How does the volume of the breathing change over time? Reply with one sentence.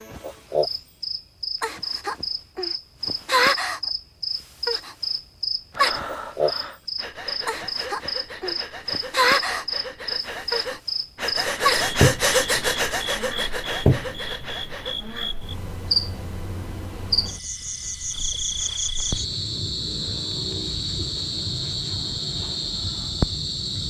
The volume of the breathing goes up, then down.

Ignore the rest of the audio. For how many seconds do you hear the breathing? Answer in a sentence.
The breathing can be heard for 9 seconds in total.